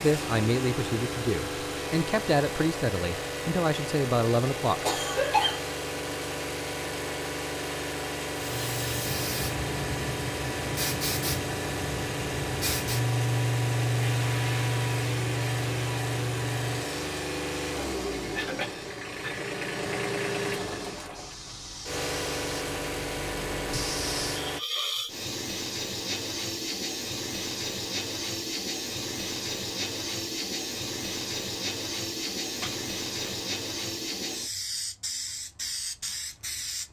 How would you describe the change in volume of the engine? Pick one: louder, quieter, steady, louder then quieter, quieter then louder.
steady.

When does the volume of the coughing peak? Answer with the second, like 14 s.
5 s.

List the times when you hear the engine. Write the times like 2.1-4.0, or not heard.
0.0-24.6.